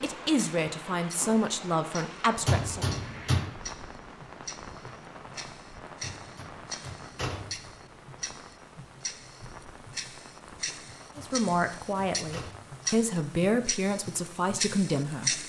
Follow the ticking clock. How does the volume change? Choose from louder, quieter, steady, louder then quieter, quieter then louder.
louder.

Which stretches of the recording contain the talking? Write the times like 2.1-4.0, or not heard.
0.0-2.9, 11.2-15.4.